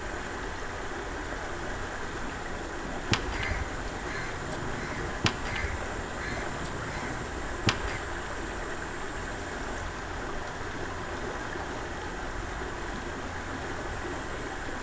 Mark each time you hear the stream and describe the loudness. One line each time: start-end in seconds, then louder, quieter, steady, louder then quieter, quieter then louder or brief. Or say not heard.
0.0-14.7 steady.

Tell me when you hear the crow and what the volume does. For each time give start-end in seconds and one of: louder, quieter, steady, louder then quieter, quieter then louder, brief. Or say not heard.
3.1-8.0 louder then quieter.